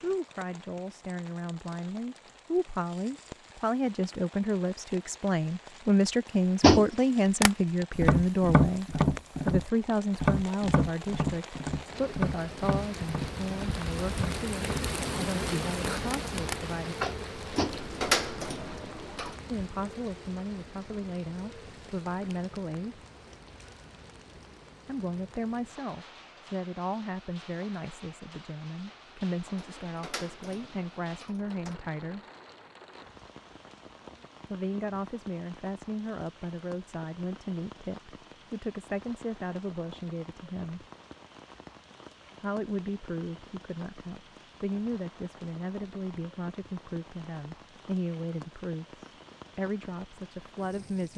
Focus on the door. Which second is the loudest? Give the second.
18 s.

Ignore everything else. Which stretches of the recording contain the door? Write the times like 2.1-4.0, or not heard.
17.4-19.4, 29.4-31.8.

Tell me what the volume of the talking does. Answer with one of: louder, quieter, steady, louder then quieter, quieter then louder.
quieter.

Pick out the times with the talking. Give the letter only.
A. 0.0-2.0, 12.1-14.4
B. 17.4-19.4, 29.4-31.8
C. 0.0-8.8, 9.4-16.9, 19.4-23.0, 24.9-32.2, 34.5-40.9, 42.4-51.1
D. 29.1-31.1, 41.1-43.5
C.